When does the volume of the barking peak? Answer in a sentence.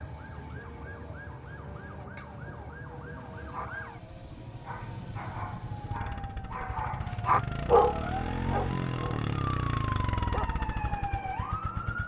The volume of the barking peaks at 8 seconds.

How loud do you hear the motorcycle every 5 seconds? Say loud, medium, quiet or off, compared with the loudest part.
quiet, loud, loud.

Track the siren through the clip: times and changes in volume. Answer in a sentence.
You can hear the siren from 0.0 to 12.0 s, getting louder.